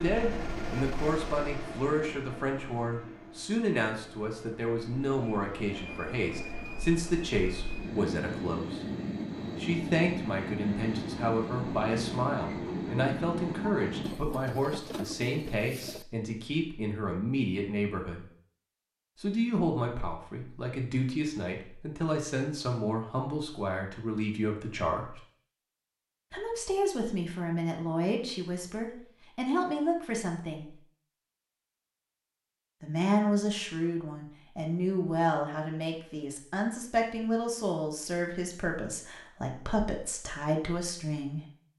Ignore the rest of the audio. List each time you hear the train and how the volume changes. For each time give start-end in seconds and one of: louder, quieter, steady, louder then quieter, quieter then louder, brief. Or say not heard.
0.0-14.2 quieter then louder.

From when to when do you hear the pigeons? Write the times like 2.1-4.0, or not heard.
14.0-16.1.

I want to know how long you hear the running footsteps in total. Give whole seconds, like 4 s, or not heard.
not heard.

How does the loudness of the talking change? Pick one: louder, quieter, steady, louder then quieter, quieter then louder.
steady.